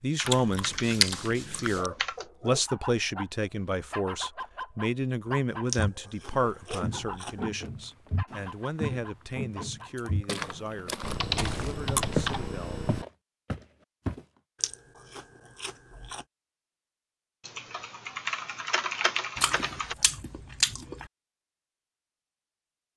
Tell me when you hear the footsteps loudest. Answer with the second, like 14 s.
12 s.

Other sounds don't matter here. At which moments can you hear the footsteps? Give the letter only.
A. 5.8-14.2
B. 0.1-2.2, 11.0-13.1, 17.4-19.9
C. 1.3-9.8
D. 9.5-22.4
A.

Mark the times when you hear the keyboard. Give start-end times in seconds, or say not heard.
0.1-2.2, 11.0-13.1, 17.4-19.9.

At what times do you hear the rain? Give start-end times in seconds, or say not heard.
not heard.